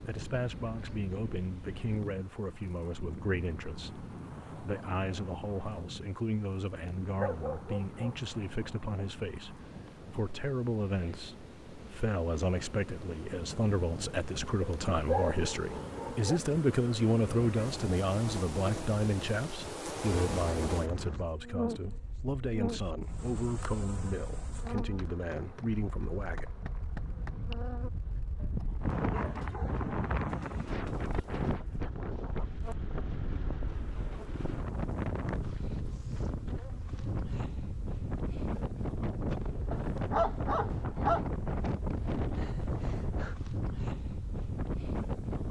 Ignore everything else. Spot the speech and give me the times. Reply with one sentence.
You can hear the speech from 0.0 to 26.4 s.